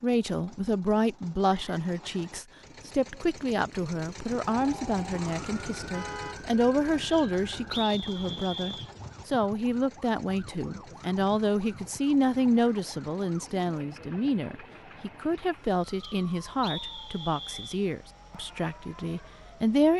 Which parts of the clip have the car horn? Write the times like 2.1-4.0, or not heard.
5.9-6.4.